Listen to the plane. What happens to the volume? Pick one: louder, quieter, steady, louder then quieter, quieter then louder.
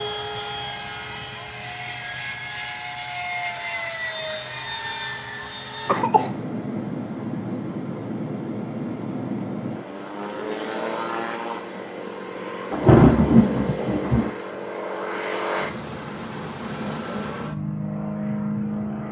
steady.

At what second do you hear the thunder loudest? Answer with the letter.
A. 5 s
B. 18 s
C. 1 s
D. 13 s
D.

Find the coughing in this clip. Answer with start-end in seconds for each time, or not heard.
5.8-6.3.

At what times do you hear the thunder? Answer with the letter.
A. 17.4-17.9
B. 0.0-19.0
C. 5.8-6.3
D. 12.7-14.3
D.